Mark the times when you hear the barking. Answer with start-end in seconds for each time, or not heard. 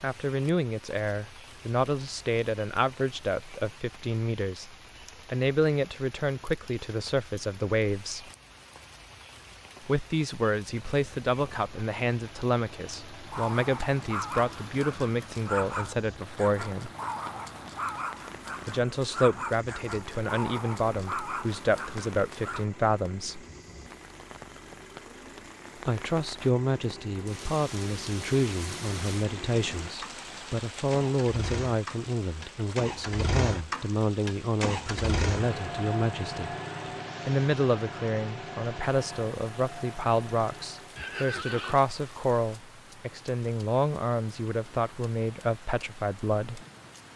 13.2-22.6.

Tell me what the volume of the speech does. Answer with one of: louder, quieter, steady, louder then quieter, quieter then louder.
steady.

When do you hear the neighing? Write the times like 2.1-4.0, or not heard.
41.0-41.9.